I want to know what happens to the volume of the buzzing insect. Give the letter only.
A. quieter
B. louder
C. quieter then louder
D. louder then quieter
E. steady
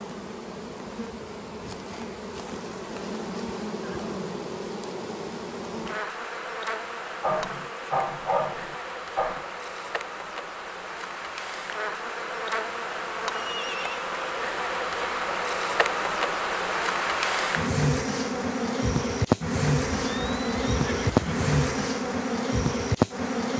B.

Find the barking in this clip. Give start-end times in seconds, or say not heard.
7.2-9.4.